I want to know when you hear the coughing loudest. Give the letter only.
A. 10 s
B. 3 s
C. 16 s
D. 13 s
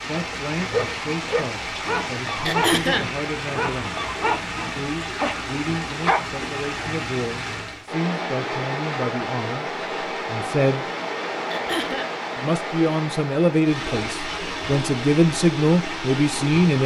B.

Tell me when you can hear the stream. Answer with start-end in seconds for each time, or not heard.
0.0-16.8.